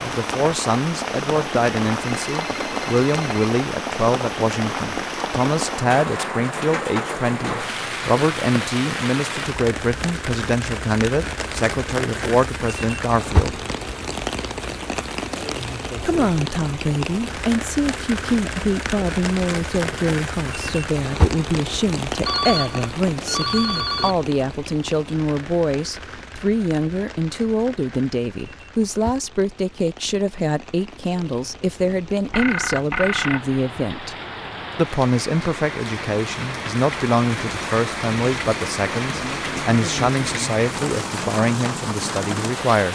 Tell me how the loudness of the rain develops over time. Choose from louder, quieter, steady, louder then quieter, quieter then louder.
quieter then louder.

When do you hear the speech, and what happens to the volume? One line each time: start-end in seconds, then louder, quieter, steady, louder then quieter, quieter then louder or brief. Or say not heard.
0.0-13.6 steady
16.0-34.1 steady
34.8-42.9 steady.